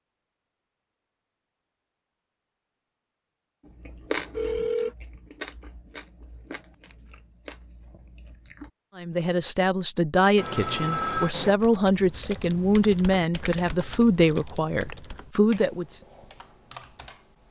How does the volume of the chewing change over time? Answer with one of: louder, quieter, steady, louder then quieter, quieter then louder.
quieter then louder.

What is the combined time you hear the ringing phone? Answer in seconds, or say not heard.
2 s.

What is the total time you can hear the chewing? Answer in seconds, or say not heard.
5 s.